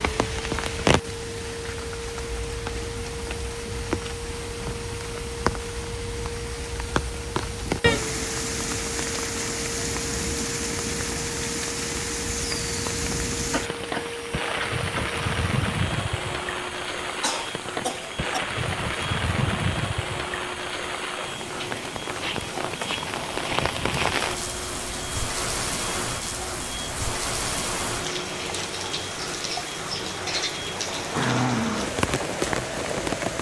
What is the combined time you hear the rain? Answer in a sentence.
The rain can be heard for 33 seconds in total.